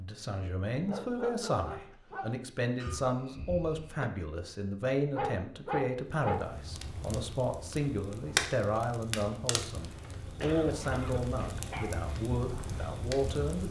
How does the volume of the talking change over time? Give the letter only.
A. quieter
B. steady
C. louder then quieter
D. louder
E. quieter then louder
B.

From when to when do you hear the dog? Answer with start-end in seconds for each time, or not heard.
0.8-2.4, 5.1-6.5, 11.7-12.1.